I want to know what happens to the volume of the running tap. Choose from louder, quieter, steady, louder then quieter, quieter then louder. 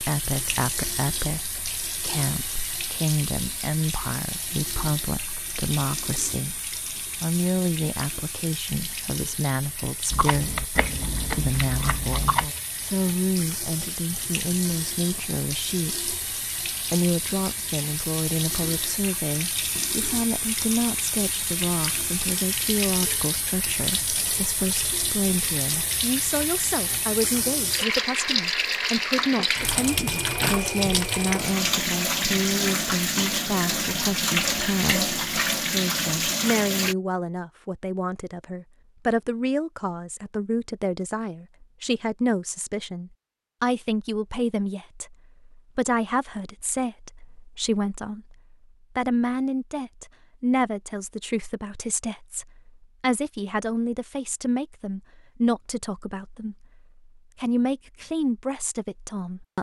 louder.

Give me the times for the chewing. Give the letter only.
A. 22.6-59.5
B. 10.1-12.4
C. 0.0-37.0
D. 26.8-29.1
B.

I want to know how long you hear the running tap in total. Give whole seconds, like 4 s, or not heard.
37 s.